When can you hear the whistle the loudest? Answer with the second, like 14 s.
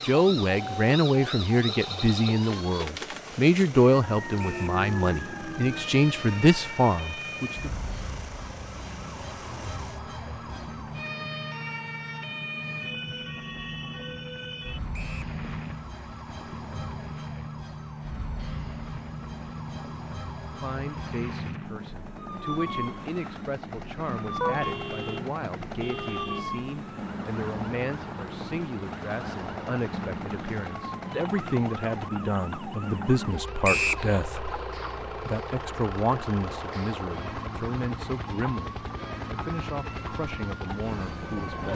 34 s.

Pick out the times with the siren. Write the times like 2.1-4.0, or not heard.
0.0-41.7.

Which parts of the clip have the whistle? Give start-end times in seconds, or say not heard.
4.3-4.8, 14.9-15.3, 33.6-34.0.